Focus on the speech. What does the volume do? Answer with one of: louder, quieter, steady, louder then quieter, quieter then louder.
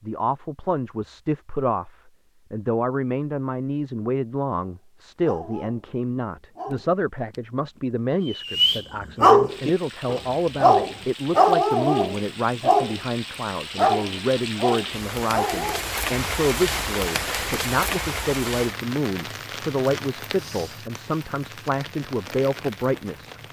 steady.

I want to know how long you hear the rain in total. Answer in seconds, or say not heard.
14 s.